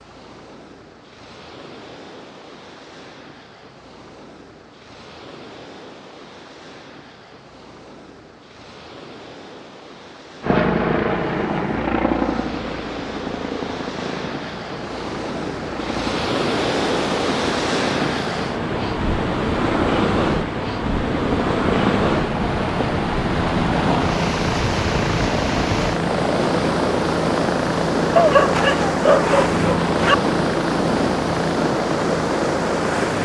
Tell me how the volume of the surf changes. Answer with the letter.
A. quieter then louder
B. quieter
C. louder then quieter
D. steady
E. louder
E.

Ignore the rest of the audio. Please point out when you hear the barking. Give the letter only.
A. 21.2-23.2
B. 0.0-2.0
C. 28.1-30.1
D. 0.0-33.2
C.